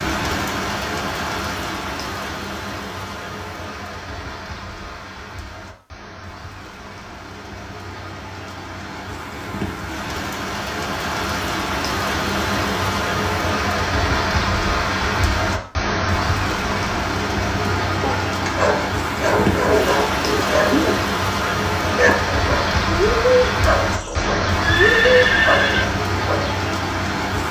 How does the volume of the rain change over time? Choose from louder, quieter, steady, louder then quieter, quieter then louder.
louder.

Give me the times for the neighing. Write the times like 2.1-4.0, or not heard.
23.9-25.9.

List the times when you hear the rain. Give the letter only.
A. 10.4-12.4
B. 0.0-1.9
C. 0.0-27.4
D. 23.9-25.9
C.